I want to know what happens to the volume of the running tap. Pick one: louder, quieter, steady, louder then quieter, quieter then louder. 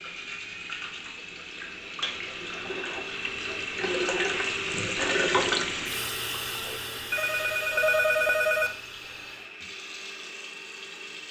louder then quieter.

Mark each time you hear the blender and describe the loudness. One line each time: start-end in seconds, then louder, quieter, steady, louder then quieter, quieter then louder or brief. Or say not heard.
0.0-11.2 louder then quieter.